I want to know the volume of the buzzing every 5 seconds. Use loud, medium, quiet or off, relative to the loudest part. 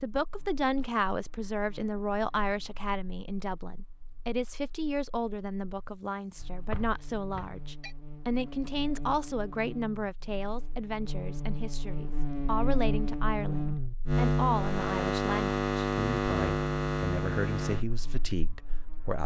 quiet, quiet, loud, loud.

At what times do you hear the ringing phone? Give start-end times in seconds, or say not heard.
6.4-8.0.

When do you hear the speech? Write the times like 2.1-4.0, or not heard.
0.0-19.2.